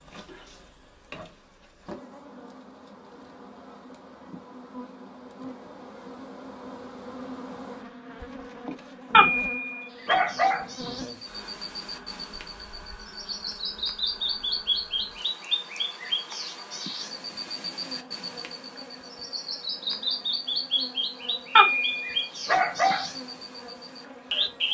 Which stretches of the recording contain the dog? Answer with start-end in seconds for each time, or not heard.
9.1-10.7, 21.6-23.1.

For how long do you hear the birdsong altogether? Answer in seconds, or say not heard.
15 s.